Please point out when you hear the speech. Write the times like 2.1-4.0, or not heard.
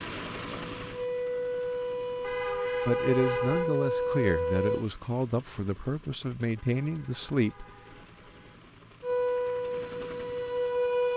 2.9-7.7.